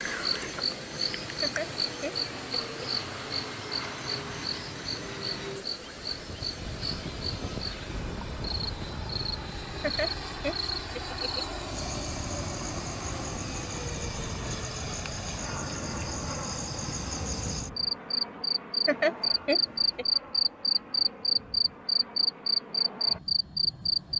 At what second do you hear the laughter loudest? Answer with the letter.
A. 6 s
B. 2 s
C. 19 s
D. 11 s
C.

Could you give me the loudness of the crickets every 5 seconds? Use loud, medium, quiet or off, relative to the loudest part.
medium, quiet, quiet, medium, loud.